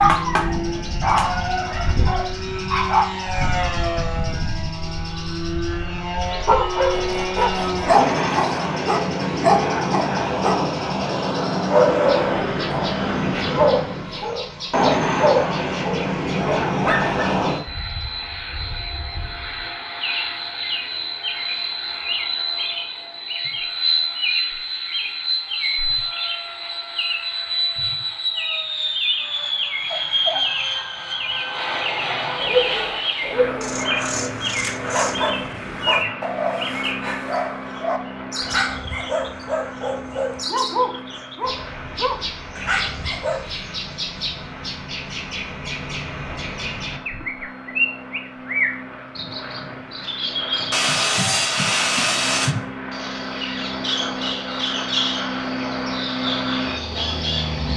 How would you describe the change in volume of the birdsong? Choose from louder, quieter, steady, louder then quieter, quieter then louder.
louder.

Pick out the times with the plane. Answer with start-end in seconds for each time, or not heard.
0.0-57.7.